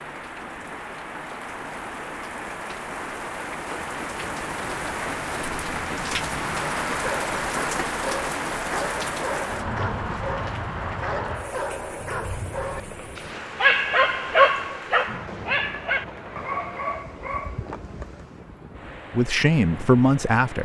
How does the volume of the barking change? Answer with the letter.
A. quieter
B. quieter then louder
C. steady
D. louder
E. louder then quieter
E.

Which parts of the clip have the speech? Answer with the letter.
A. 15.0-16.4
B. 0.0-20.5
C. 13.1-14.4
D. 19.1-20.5
D.